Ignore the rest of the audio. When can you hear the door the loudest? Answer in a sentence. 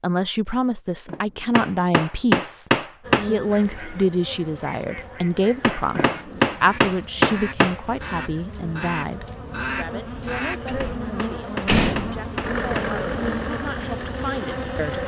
The loudest moment of the door is at 12 seconds.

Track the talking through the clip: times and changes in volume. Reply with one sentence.
You can hear the talking from 0.0 to 15.0 s, getting quieter.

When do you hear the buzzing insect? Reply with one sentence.
The buzzing insect can be heard from 3.0 to 15.0 s.